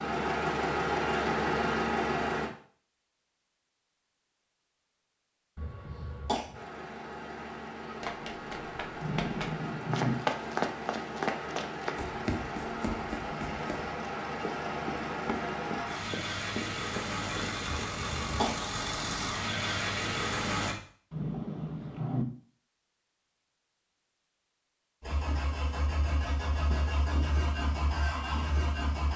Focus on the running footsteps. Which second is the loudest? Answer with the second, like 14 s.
10 s.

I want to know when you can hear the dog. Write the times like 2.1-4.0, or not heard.
not heard.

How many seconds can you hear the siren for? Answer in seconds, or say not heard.
not heard.